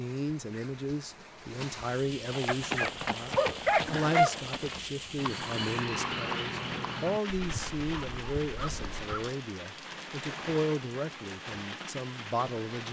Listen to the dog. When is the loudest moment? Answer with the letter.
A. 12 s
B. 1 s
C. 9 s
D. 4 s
D.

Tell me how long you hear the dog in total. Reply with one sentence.
You can hear the dog for 3 seconds altogether.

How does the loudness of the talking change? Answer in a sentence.
The loudness of the talking stays about the same.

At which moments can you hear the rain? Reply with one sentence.
You can hear the rain from 0.0 to 12.8 s.